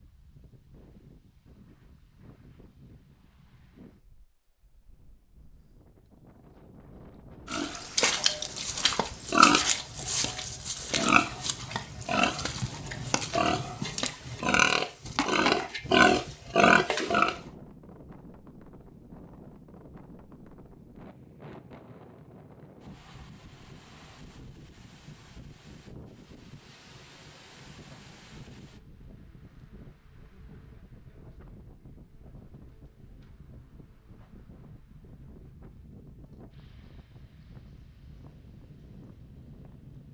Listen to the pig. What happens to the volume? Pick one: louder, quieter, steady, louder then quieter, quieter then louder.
quieter then louder.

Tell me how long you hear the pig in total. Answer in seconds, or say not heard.
10 s.